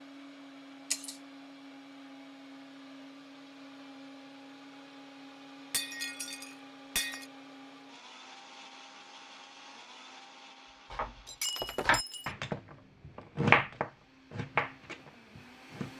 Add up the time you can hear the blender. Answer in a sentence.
You can hear the blender for 16 seconds altogether.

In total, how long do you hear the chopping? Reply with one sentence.
The chopping can be heard for 5 seconds in total.